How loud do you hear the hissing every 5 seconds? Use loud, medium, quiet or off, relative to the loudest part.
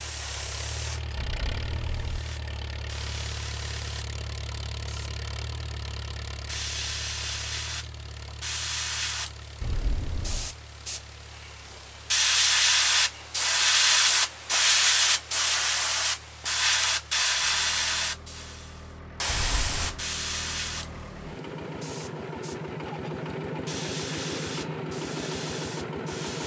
quiet, medium, loud, loud, quiet, quiet.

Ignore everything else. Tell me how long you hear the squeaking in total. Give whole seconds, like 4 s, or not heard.
3 s.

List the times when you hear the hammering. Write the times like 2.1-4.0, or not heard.
not heard.